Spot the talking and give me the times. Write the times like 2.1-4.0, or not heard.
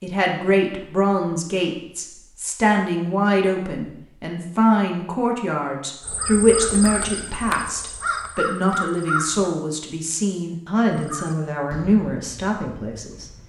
0.0-13.2.